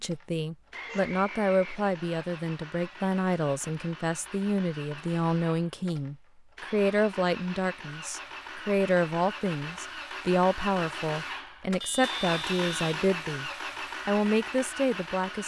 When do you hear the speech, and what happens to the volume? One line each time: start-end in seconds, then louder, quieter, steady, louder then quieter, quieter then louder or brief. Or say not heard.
0.0-15.4 steady.